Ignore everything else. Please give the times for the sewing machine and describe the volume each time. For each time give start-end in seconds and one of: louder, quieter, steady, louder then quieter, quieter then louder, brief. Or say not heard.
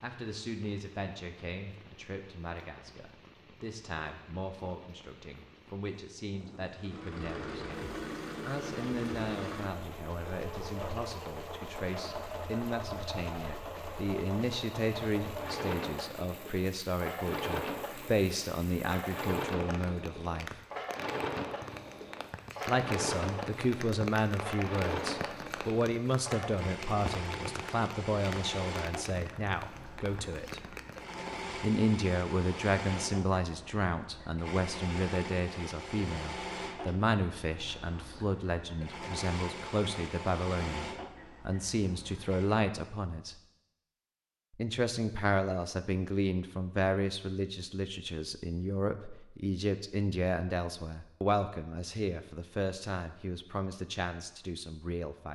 6.8-42.6 steady.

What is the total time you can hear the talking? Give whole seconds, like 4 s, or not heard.
51 s.